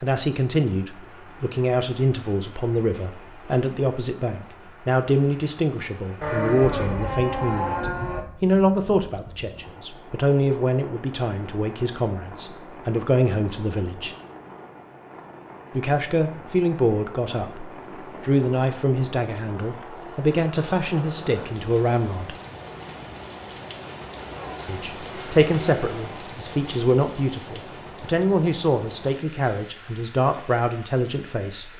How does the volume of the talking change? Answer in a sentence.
The loudness of the talking stays about the same.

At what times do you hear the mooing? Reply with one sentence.
You can hear the mooing from 6.2 to 8.2 s and from 24.2 to 26.1 s.